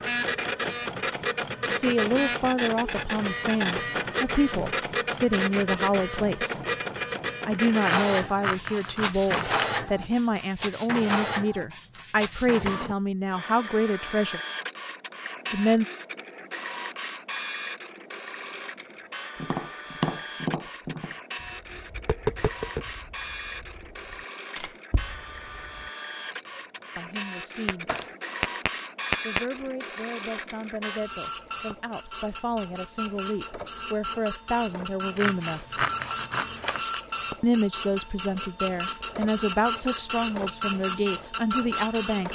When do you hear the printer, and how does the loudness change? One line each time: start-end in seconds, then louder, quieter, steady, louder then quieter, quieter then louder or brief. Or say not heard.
0.0-42.3 quieter then louder.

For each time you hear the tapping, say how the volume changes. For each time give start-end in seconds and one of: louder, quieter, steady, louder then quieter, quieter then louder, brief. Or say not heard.
18.4-29.4 quieter then louder.